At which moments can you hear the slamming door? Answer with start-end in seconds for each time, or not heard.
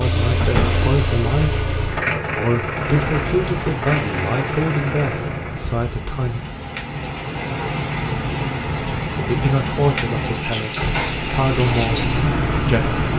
0.4-0.8, 10.4-11.3.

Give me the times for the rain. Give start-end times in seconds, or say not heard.
2.6-13.1.